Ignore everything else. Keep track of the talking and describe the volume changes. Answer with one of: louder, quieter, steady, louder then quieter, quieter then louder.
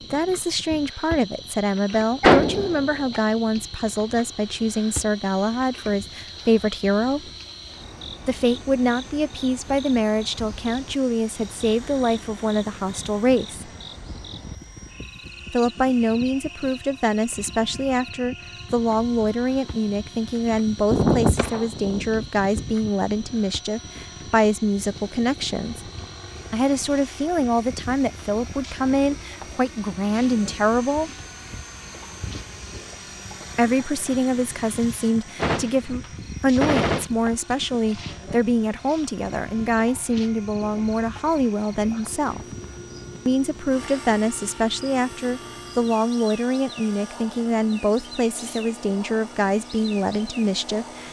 steady.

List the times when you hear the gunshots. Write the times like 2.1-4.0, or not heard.
2.2-3.2, 20.9-22.9, 35.4-37.1.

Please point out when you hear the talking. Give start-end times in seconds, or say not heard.
0.1-7.3, 8.2-13.7, 15.5-25.9, 26.5-31.1, 33.5-42.5, 43.2-51.0.